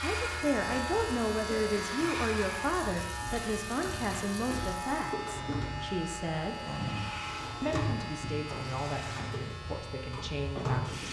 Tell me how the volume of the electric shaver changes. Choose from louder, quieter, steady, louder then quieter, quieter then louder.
quieter.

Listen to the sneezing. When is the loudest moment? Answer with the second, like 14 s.
7 s.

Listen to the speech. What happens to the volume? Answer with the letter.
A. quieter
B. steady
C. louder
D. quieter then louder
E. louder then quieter
A.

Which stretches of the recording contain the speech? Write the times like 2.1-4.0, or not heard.
0.0-6.6, 7.6-11.0.